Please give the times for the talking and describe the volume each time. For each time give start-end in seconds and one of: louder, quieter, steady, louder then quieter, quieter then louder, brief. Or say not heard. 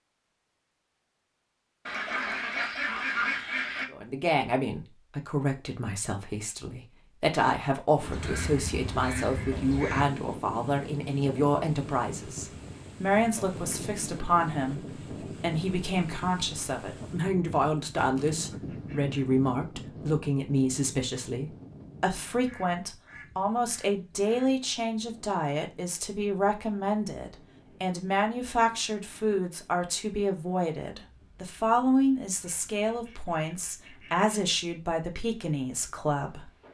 3.9-36.5 steady.